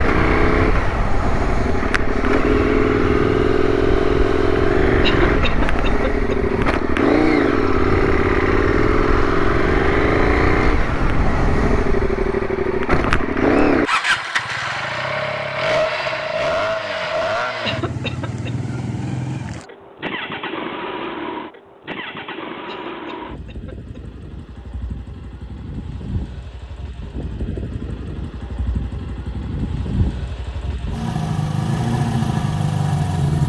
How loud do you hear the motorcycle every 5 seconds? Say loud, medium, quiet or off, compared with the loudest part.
loud, loud, loud, medium, quiet, quiet, loud.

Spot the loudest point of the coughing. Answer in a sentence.
The volume of the coughing peaks at 5 seconds.